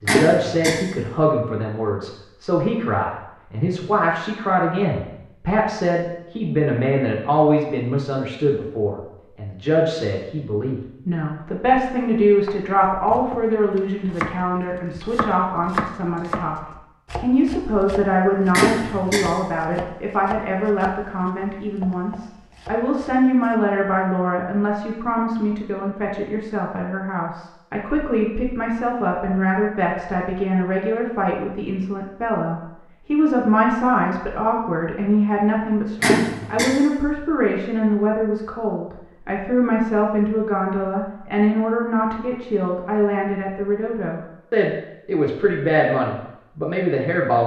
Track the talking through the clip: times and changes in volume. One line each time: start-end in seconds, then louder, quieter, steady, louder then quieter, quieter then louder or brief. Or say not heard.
0.0-47.4 steady.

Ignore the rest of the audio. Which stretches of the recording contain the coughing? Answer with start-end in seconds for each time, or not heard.
0.1-0.8, 18.5-19.2, 36.0-36.7.